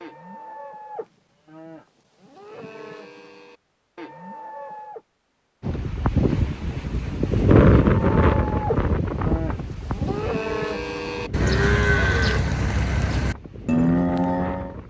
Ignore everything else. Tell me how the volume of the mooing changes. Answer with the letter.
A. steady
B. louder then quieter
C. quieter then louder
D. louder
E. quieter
D.